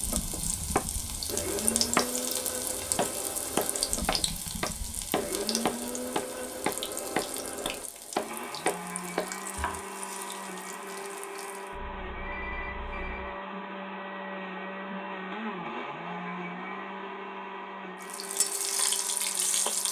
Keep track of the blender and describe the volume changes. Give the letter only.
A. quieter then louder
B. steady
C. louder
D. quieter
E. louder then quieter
B.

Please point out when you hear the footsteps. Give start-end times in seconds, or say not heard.
not heard.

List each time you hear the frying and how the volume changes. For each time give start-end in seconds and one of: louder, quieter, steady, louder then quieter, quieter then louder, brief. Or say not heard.
0.0-11.8 quieter
18.0-19.8 brief.